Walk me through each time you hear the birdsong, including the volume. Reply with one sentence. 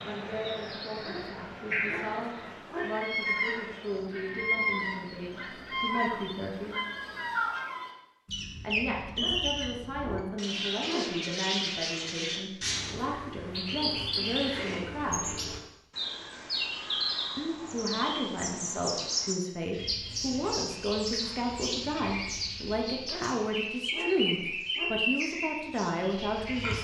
You can hear the birdsong from 0.0 to 26.8 s, at a steady volume.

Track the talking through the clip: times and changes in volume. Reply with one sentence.
You can hear the talking from 0.0 to 6.8 s, at a steady volume; from 8.6 to 15.3 s, at a steady volume; and from 17.4 to 26.8 s, at a steady volume.